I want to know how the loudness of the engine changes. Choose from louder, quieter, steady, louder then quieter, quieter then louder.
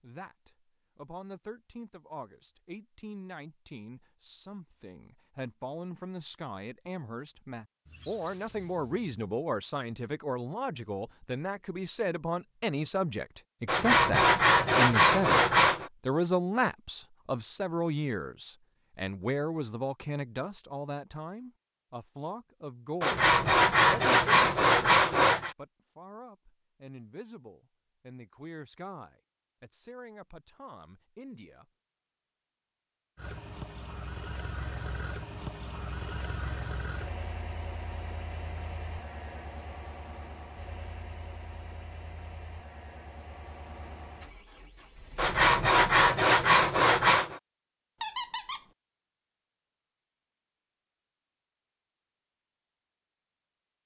quieter.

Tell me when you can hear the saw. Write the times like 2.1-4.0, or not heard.
13.7-15.9, 23.0-25.6, 45.1-47.4.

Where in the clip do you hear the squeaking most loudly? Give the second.
48 s.